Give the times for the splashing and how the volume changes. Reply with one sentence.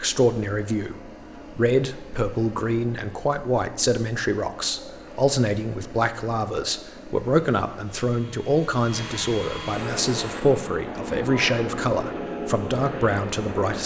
You can't hear the splashing here.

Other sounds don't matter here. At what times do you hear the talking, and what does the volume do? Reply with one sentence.
You can hear the talking from 0.0 to 13.8 s, at a steady volume.